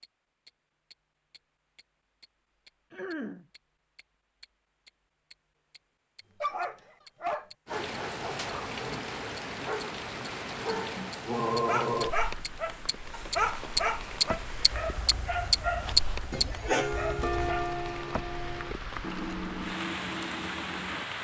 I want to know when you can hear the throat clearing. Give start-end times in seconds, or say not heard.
2.9-3.5, 10.7-12.2, 16.3-17.0.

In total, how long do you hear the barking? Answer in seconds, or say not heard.
11 s.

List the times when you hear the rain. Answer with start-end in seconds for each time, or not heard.
7.7-21.1.